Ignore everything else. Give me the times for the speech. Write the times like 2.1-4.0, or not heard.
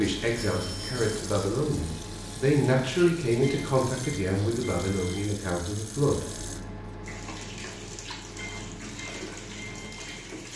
0.0-6.2.